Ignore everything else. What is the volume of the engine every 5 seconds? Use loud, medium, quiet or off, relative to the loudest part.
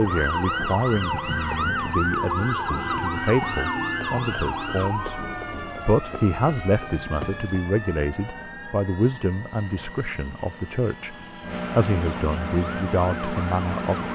off, quiet, loud.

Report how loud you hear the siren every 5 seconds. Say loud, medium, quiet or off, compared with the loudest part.
loud, medium, quiet.